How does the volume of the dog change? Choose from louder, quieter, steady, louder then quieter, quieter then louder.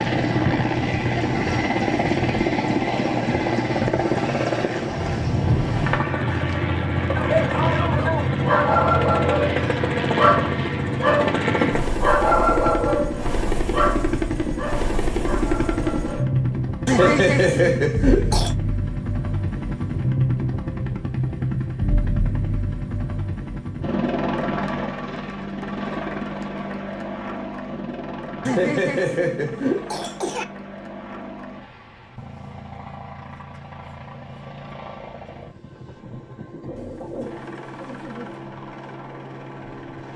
quieter.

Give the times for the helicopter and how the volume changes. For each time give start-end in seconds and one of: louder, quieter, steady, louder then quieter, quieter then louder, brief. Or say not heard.
0.0-40.1 quieter.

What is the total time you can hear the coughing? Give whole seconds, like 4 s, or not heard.
4 s.